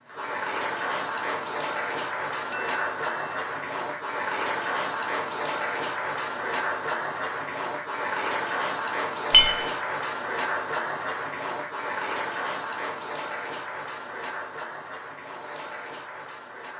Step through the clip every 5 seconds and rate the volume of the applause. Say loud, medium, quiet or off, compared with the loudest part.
loud, loud, loud, medium.